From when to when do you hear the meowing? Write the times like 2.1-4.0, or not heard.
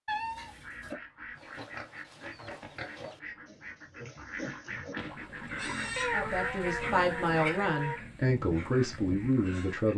0.1-0.9, 6.0-8.0.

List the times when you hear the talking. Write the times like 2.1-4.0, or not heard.
6.1-9.9.